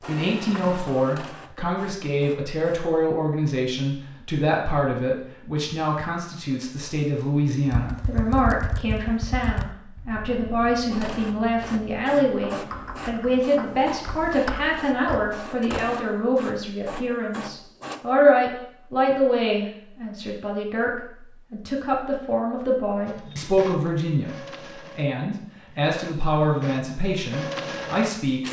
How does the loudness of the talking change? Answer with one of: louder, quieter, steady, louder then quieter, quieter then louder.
steady.